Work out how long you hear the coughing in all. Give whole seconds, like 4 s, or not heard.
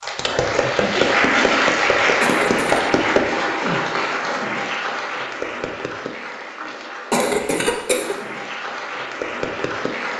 2 s.